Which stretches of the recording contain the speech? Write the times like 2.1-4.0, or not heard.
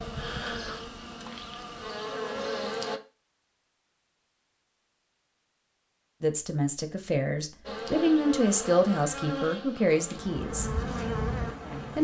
6.2-10.7.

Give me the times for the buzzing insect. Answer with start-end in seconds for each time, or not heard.
0.0-3.0, 7.7-11.9.